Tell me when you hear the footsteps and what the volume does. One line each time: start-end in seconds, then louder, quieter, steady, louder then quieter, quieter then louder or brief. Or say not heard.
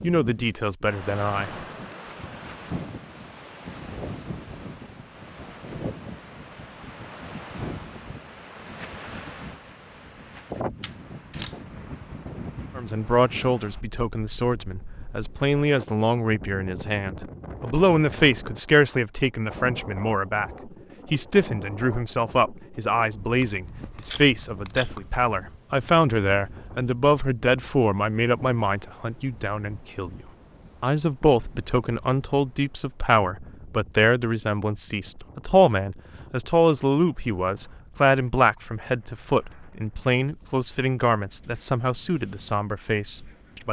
not heard.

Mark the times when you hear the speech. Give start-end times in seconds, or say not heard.
0.0-1.5, 12.8-30.2, 30.8-43.6.